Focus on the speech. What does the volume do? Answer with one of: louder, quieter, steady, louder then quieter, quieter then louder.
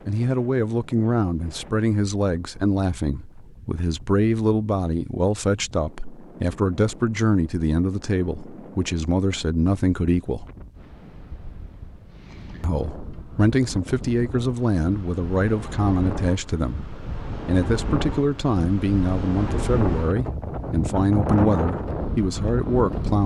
steady.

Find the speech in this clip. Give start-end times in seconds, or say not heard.
0.1-10.4, 12.6-23.2.